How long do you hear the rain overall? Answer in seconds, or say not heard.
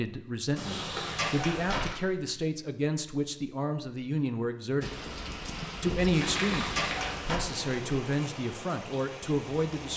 5 s.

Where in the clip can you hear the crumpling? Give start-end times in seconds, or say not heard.
0.8-1.9, 6.2-7.0.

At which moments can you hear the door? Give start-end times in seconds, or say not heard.
0.6-1.8, 6.1-7.4.